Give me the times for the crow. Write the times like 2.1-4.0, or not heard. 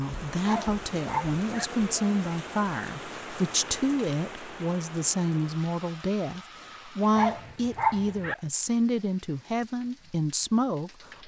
not heard.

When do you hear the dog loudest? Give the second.
8 s.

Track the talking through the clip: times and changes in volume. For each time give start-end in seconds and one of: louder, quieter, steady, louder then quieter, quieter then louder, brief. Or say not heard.
0.0-11.2 steady.